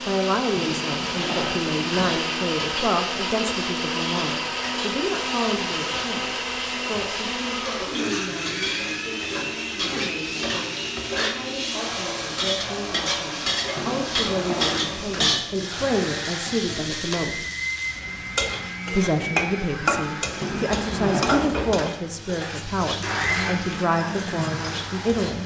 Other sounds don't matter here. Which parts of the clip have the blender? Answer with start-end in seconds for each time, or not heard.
0.0-25.4.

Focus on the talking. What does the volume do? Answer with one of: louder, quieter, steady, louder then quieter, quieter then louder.
quieter then louder.